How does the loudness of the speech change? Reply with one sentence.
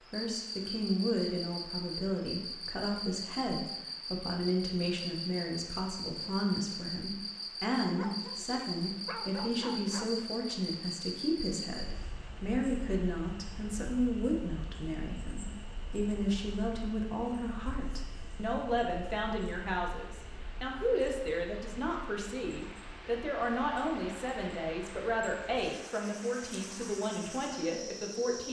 The volume of the speech stays about the same.